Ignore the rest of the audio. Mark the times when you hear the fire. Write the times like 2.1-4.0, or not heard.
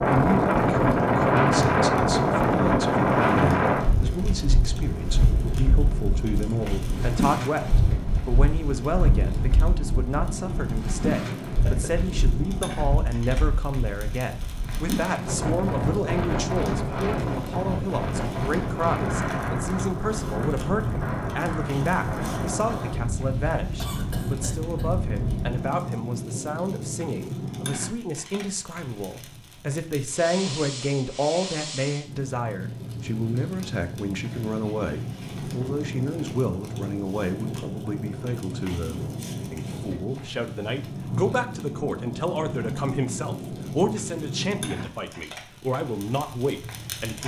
0.0-47.2.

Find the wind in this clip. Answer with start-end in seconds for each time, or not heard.
0.0-25.6.